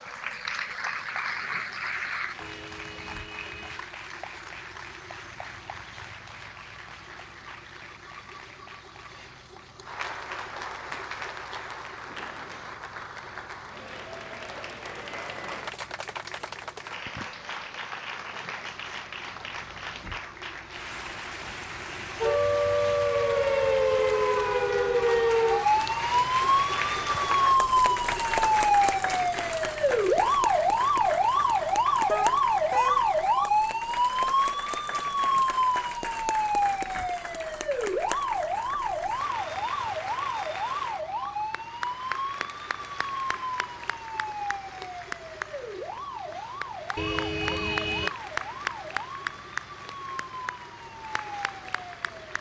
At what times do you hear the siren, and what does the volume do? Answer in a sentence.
The siren can be heard from 22.2 to 52.3 s, getting quieter.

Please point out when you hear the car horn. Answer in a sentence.
The car horn can be heard from 2.4 to 3.9 s, from 32.0 to 33.1 s and from 47.0 to 48.1 s.